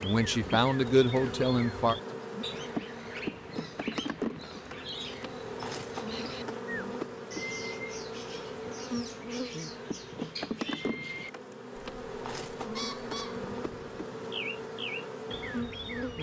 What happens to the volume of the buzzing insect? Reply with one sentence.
The loudness of the buzzing insect stays about the same.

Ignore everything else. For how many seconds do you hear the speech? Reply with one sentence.
The speech can be heard for 2 seconds in total.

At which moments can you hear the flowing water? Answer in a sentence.
You can't hear the flowing water here.